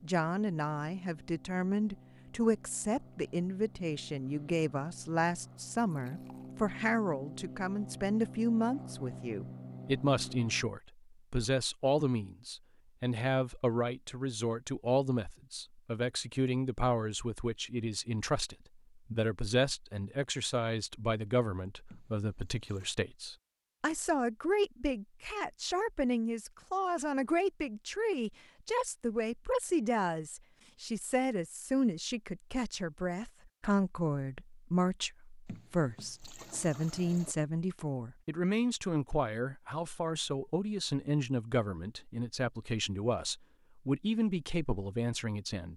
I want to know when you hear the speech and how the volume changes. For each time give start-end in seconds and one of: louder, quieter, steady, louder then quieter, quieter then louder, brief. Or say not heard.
0.0-45.7 steady.